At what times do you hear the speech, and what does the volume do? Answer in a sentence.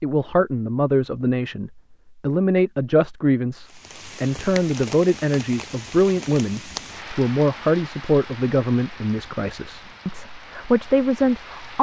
You can hear the speech from 0.0 to 11.7 s, at a steady volume.